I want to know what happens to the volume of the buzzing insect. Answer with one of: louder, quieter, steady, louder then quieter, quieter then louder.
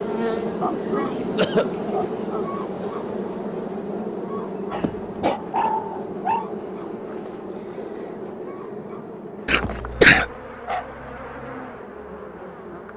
quieter.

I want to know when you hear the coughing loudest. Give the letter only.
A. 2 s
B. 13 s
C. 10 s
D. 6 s
C.